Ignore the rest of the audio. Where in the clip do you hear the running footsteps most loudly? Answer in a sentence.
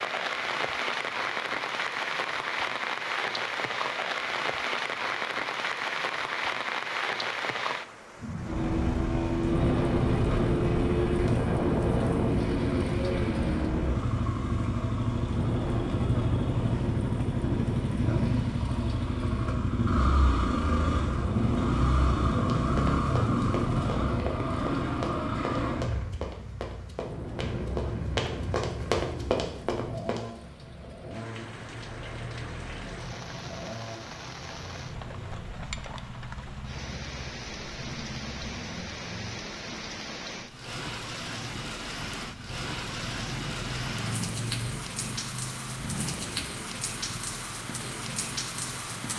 The volume of the running footsteps peaks at 29 seconds.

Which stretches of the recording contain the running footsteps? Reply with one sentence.
You can hear the running footsteps from 22.3 to 30.4 s.